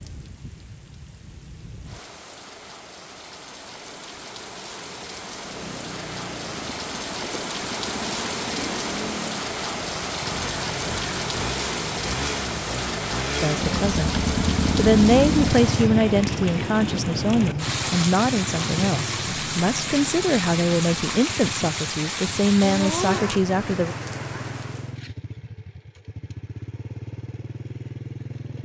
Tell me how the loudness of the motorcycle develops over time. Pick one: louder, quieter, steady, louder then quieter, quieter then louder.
louder then quieter.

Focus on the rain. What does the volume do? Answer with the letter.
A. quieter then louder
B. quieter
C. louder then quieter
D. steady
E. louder
E.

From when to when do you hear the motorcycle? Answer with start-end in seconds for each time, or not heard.
5.4-28.6.